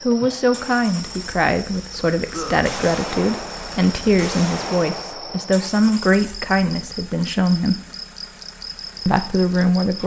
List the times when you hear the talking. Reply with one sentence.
You can hear the talking from 0.0 to 7.8 s and from 9.1 to 10.0 s.